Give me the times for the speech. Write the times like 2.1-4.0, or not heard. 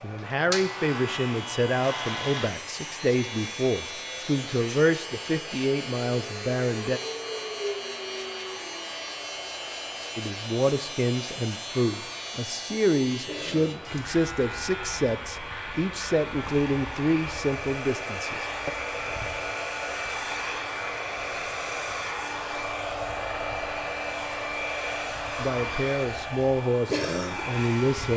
0.0-7.0, 10.2-18.7, 25.4-28.1.